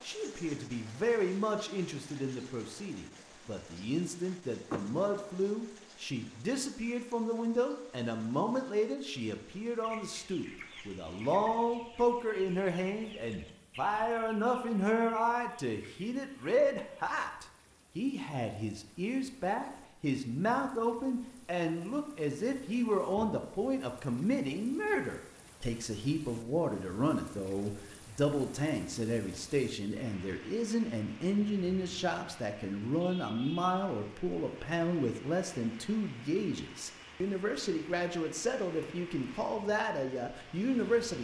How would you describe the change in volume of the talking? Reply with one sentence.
The volume of the talking stays about the same.